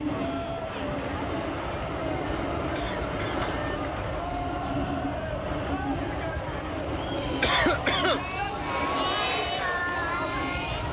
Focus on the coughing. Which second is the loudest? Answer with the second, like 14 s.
8 s.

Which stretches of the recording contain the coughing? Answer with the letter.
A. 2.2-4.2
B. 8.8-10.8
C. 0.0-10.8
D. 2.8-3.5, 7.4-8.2
D.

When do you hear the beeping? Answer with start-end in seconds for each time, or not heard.
2.2-4.2.